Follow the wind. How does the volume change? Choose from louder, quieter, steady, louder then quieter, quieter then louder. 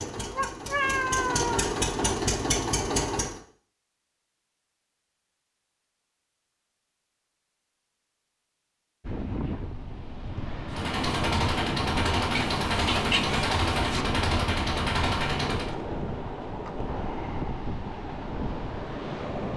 steady.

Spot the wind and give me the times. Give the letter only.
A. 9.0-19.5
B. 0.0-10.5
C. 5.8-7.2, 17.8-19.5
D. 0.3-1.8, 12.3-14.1
A.